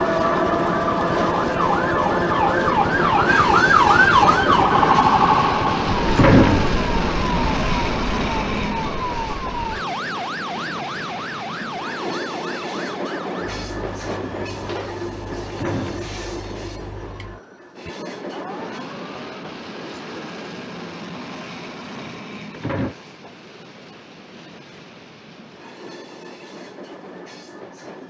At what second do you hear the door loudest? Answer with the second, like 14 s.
6 s.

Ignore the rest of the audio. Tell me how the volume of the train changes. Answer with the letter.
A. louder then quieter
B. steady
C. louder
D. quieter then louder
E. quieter
E.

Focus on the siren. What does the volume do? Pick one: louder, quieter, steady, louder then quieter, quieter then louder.
quieter.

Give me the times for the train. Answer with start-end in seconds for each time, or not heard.
0.0-28.0.